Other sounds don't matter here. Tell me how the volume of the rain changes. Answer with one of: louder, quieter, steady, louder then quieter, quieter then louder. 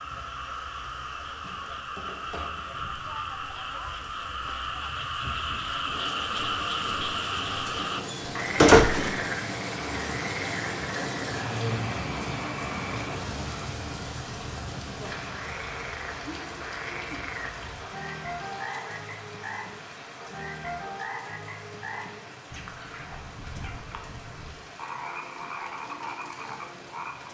louder then quieter.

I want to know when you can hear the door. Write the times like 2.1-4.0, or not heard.
8.1-9.2.